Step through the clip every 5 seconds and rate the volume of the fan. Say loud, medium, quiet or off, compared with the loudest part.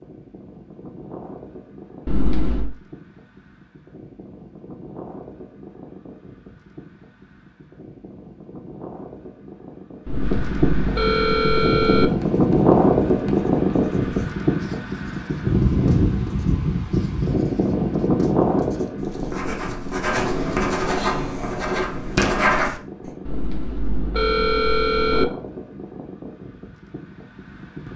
quiet, quiet, loud, loud, quiet, quiet.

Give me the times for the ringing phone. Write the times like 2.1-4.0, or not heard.
2.0-2.7, 10.1-12.1, 23.2-25.2.